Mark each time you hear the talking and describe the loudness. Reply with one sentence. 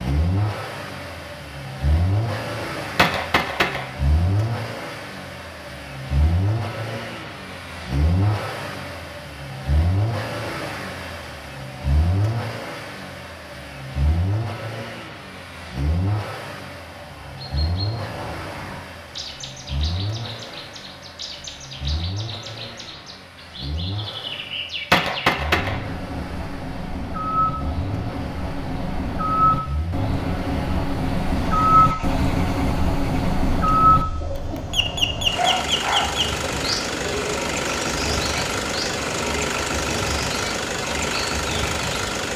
You can't hear the talking here.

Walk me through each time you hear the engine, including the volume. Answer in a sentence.
The engine can be heard from 0.0 to 42.3 s, getting quieter then louder.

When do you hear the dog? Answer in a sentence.
The dog can be heard from 35.3 to 36.2 s.